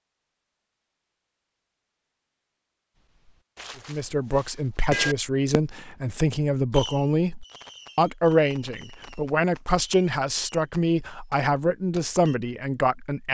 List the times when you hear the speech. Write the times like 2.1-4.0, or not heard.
3.9-13.3.